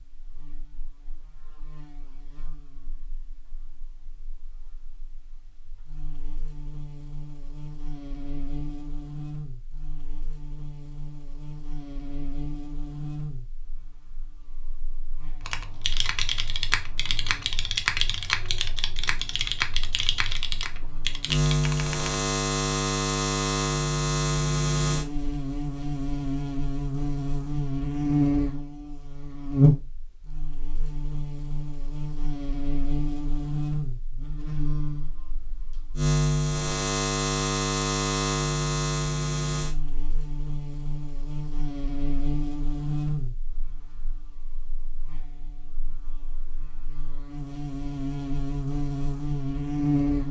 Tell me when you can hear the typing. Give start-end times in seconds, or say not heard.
15.4-22.1.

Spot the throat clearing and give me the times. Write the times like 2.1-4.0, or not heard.
not heard.